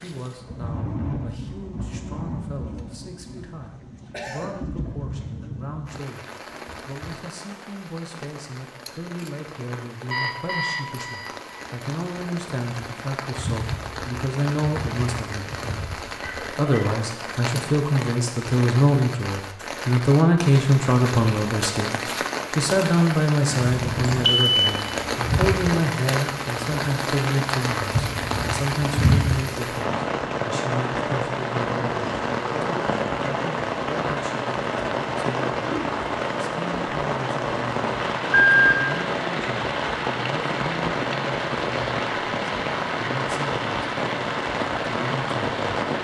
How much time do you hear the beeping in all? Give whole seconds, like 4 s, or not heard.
3 s.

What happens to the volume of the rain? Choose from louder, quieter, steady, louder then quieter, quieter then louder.
louder.